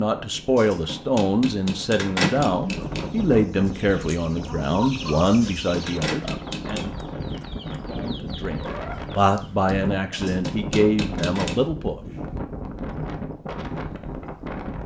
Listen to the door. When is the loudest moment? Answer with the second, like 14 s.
2 s.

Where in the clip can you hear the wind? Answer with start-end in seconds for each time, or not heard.
0.1-14.8.